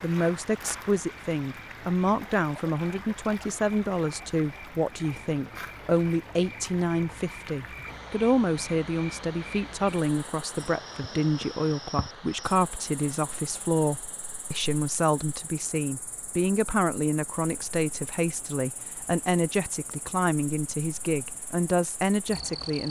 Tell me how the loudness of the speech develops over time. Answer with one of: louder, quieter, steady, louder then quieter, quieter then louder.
steady.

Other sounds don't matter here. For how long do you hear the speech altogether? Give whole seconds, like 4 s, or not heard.
23 s.